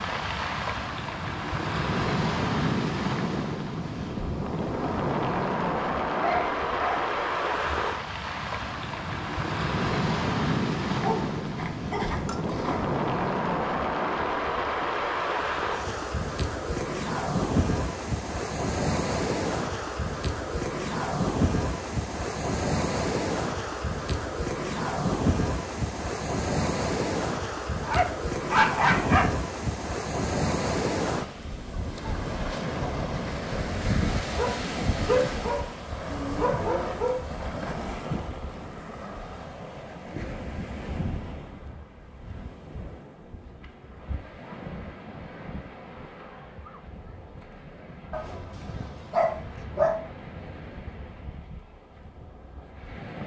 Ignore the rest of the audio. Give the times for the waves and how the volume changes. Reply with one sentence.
You can hear the waves from 0.0 to 53.2 s, getting quieter.